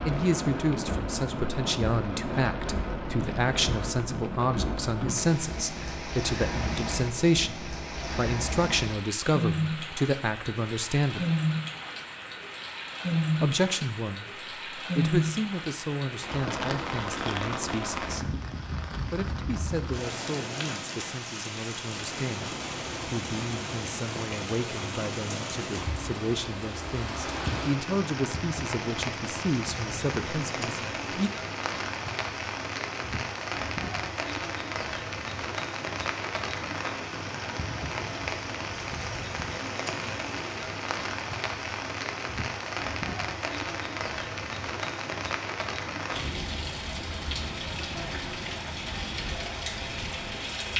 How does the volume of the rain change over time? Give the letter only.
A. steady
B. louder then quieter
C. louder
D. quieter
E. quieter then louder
A.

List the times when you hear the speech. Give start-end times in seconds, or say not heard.
0.1-11.2, 13.4-18.4, 19.1-31.3.